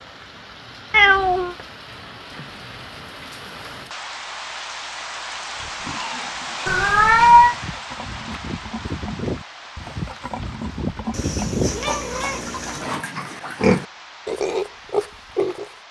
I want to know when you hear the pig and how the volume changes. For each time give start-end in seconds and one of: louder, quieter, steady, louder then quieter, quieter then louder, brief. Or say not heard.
5.5-15.7 louder.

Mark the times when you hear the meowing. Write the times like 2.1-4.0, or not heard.
0.9-1.6, 6.7-7.5, 11.1-12.9.